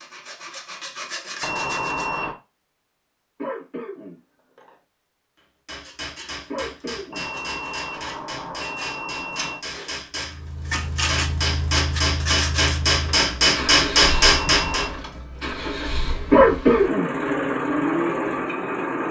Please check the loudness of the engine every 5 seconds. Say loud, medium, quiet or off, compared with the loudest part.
off, off, medium, loud.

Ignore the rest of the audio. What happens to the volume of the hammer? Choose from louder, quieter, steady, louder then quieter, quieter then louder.
louder.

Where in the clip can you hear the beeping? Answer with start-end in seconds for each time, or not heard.
1.4-2.4, 7.1-9.6, 14.0-14.9.